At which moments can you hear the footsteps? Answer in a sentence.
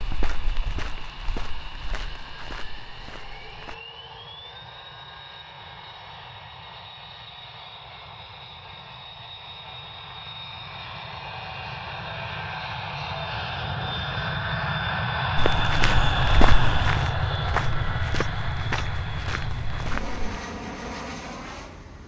You can hear the footsteps from 0.0 to 3.8 s and from 15.3 to 20.2 s.